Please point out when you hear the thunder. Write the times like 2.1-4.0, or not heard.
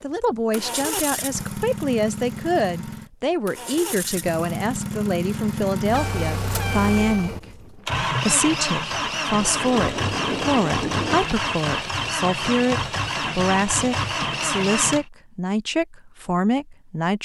9.3-11.2.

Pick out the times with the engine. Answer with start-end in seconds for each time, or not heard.
0.0-15.1.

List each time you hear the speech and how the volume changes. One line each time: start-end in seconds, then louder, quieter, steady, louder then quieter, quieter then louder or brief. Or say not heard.
0.0-17.1 steady.